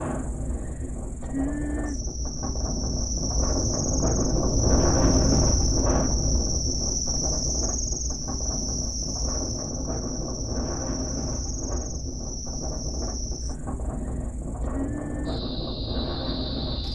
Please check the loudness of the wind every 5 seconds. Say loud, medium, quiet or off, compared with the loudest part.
loud, loud, medium, loud.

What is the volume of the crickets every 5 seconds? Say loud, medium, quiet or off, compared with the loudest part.
loud, loud, medium, medium.